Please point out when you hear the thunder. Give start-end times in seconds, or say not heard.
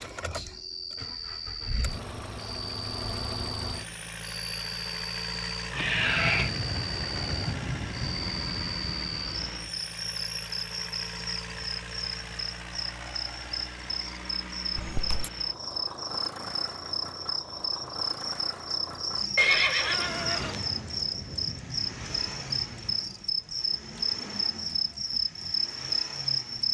6.0-9.5, 20.1-23.1.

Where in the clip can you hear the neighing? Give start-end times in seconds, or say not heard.
5.7-6.5, 14.8-15.3, 19.4-20.6.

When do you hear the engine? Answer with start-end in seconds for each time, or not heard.
0.0-26.6.